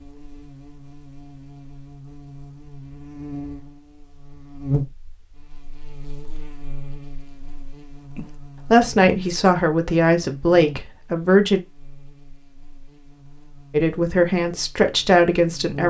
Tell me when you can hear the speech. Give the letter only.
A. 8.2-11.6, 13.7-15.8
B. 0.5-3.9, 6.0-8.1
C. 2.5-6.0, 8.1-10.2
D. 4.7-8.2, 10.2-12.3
A.